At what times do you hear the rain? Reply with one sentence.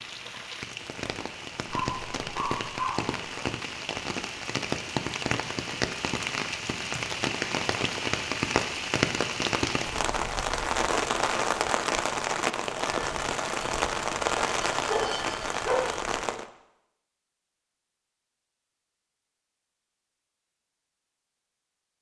The rain can be heard from 0.0 to 16.4 s.